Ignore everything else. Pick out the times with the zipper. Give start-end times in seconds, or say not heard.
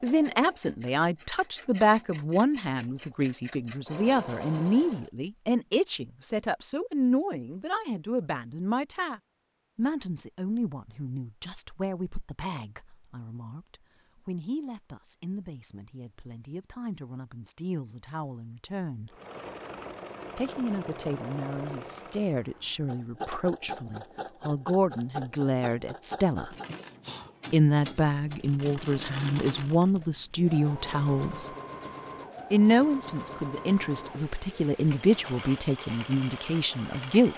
not heard.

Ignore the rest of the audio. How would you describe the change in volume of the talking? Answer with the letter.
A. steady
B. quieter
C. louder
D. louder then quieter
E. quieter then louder
E.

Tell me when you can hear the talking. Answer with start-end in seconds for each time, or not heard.
0.0-19.1, 20.4-26.6, 27.5-31.5, 32.5-37.3.